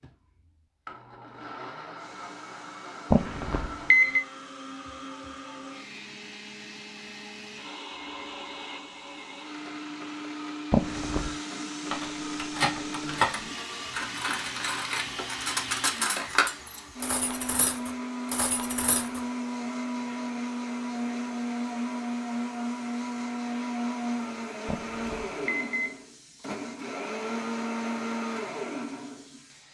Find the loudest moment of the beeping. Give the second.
4 s.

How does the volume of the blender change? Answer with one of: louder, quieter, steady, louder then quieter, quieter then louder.
louder.